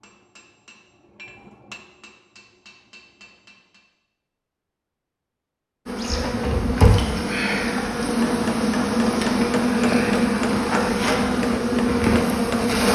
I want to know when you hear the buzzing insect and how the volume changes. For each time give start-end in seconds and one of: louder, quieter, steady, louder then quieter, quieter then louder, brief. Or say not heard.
5.8-12.9 steady.